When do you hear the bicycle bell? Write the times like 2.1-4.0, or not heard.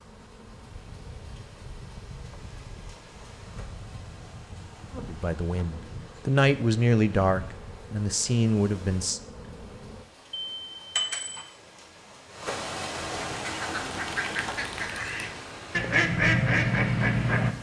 10.3-11.4.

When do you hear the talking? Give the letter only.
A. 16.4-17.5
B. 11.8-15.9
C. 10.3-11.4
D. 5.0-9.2
D.